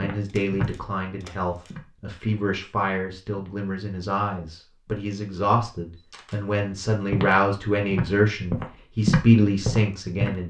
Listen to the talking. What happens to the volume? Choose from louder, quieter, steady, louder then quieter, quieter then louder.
louder.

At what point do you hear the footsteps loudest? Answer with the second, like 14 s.
9 s.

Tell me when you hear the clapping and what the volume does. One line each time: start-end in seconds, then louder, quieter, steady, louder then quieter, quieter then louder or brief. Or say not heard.
not heard.